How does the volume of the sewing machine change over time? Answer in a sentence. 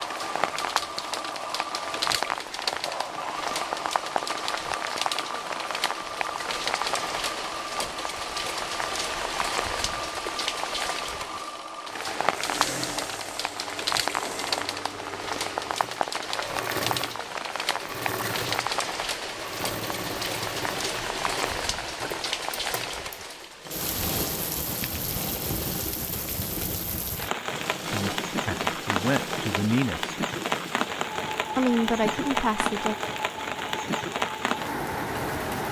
The loudness of the sewing machine stays about the same.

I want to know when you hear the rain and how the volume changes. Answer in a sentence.
You can hear the rain from 0.0 to 35.6 s, at a steady volume.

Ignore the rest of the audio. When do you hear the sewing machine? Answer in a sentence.
You can hear the sewing machine from 0.0 to 35.6 s.